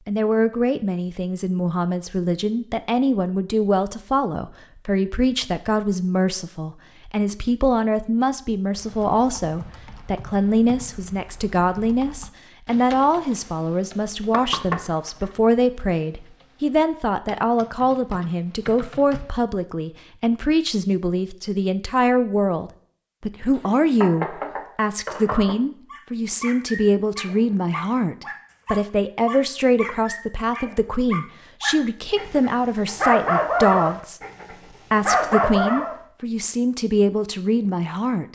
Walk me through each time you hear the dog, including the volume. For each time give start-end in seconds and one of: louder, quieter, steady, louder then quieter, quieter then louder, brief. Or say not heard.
25.9-36.0 louder.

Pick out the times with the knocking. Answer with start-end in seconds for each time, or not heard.
13.9-15.3, 23.6-25.6.